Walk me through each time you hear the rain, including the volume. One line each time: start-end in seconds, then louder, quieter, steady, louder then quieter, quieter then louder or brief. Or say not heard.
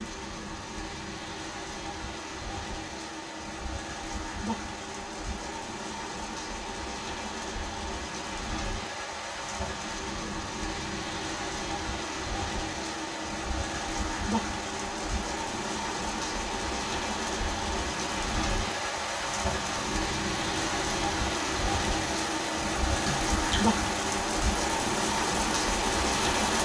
0.0-26.6 louder.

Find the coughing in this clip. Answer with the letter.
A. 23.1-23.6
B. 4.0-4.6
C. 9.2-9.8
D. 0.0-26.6
A.